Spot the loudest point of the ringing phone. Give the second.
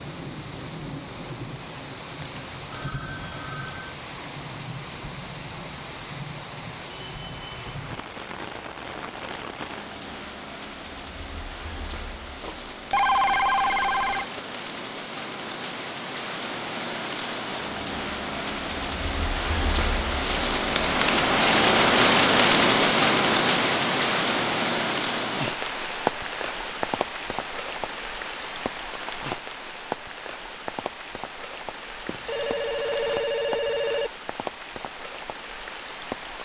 13 s.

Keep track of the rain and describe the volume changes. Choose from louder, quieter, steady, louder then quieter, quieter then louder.
louder then quieter.